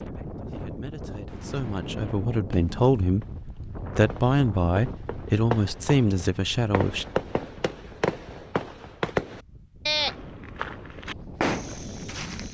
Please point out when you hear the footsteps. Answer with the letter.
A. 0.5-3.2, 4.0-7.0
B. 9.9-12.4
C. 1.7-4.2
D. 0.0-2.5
B.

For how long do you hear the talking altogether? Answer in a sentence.
The talking can be heard for 6 seconds in total.